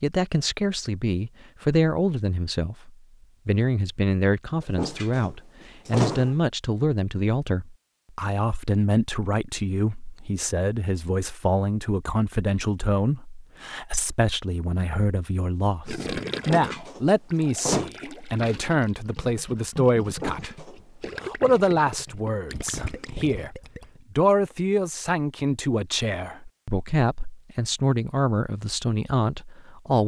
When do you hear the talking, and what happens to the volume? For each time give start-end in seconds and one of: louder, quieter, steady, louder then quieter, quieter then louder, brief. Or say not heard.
0.0-30.0 steady.